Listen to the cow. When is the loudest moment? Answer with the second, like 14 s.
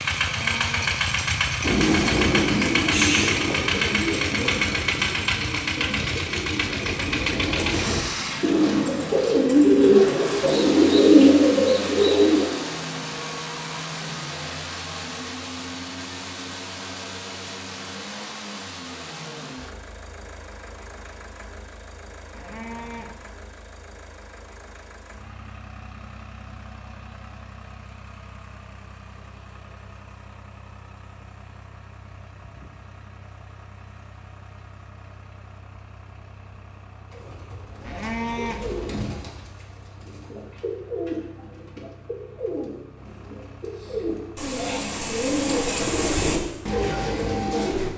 38 s.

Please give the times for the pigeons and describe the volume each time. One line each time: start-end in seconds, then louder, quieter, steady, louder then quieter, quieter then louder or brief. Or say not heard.
1.6-12.4 quieter then louder
37.1-47.9 louder.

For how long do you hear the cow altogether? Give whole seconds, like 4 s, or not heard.
3 s.